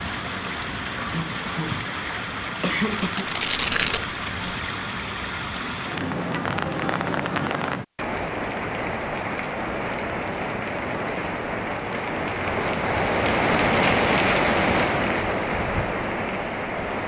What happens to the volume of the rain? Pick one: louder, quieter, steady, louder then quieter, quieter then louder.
louder.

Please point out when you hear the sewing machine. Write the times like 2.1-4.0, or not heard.
not heard.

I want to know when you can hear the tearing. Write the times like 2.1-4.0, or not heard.
2.8-4.5.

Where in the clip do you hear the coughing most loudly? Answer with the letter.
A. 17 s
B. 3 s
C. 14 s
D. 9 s
B.